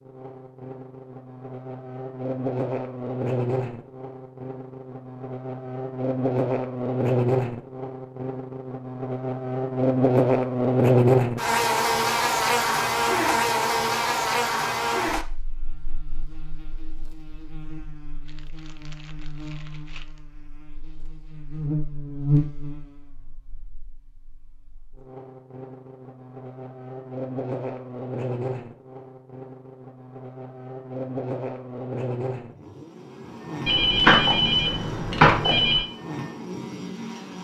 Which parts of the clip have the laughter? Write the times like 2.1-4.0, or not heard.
not heard.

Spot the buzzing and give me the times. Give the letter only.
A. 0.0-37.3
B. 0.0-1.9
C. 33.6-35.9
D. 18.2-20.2
A.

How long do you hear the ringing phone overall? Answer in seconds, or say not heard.
2 s.